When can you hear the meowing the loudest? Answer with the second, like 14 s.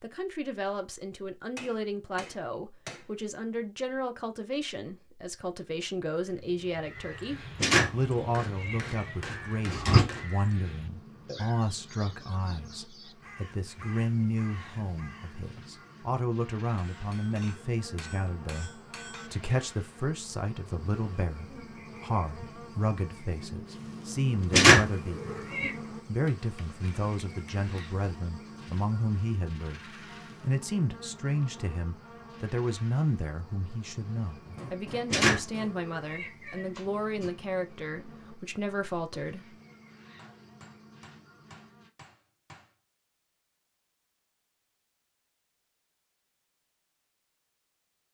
25 s.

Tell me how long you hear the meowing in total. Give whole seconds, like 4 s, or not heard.
6 s.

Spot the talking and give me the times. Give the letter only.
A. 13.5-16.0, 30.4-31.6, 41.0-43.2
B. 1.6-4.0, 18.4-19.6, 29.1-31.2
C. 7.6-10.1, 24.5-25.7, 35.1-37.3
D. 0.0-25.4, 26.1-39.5
D.